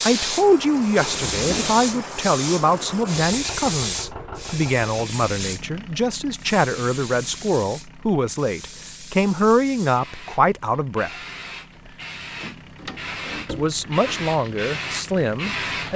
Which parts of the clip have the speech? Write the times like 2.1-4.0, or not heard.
0.0-11.1, 13.4-15.9.